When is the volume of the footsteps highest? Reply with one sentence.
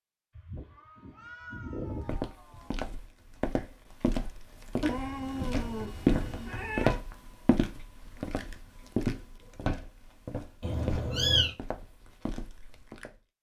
The volume of the footsteps peaks at 6 seconds.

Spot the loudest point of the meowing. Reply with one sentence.
The loudest moment of the meowing is at 11 seconds.